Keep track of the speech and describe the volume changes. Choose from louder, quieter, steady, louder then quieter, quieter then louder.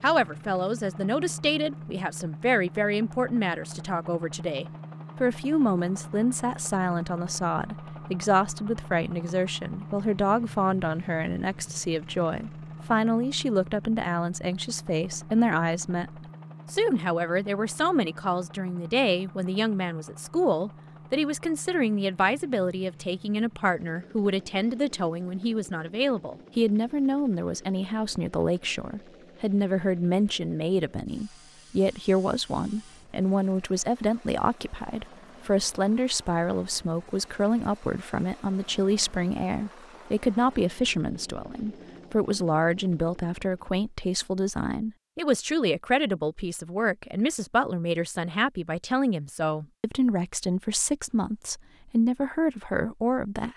steady.